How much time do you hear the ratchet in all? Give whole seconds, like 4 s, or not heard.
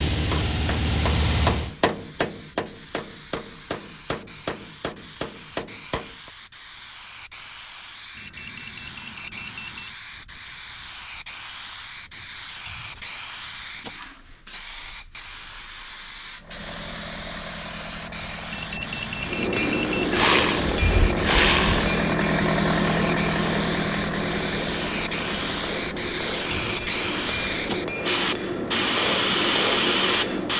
2 s.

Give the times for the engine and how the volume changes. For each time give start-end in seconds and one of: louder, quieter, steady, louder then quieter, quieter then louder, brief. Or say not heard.
0.0-1.8 brief
16.4-30.5 louder then quieter.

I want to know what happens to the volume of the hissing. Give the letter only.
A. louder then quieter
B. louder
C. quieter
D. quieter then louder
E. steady
B.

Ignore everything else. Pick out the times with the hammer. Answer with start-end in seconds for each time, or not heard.
0.1-6.3, 19.2-30.5.